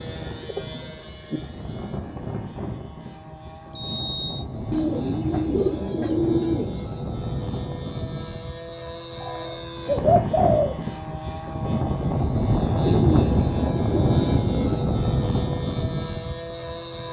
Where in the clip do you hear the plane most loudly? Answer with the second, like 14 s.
13 s.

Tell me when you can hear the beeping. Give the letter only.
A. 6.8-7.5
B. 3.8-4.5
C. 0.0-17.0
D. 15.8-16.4
B.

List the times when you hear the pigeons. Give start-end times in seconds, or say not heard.
0.3-1.4, 4.7-6.8, 9.2-10.8, 12.8-14.8.